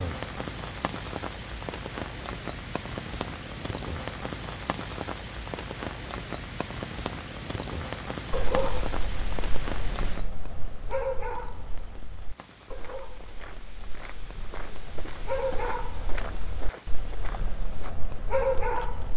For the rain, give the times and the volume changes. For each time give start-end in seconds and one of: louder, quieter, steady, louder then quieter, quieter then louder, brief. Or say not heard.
0.0-19.1 quieter.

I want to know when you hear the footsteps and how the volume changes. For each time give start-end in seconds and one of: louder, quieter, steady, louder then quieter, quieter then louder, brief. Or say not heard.
12.3-19.1 louder then quieter.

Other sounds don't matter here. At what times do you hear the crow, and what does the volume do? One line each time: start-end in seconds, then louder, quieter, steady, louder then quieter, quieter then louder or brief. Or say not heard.
not heard.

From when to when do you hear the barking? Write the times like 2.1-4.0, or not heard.
8.3-19.1.